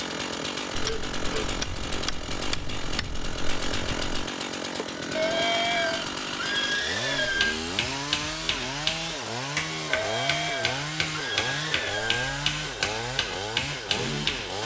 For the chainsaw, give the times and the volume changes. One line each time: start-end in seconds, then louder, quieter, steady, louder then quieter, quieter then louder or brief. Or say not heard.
0.0-14.6 steady.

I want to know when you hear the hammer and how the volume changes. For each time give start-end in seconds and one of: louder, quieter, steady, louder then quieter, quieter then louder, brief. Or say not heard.
7.2-14.6 steady.